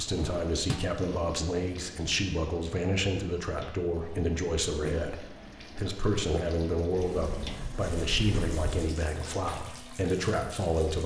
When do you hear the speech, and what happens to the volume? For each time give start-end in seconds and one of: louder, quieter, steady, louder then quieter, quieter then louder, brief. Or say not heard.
0.0-11.0 steady.